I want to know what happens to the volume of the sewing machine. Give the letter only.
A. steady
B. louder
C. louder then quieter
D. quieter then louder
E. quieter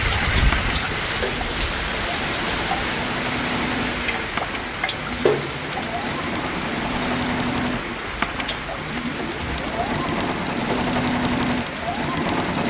B.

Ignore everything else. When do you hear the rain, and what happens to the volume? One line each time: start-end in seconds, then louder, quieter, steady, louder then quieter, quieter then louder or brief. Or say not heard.
0.0-12.6 quieter.